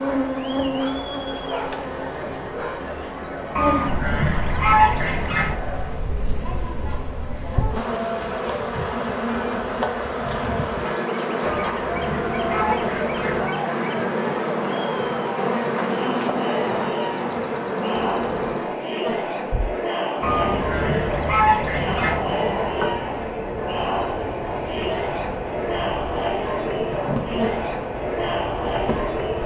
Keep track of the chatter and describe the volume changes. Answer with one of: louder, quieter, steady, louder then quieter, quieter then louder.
louder.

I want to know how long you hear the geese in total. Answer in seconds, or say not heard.
6 s.